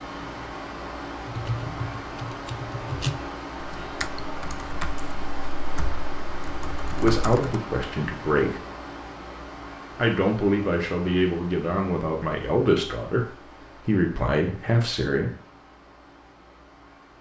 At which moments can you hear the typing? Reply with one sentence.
You can hear the typing from 1.2 to 7.6 s.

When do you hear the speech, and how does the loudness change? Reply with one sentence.
You can hear the speech briefly from 7.0 to 8.6 s; and from 9.9 to 15.3 s, at a steady volume.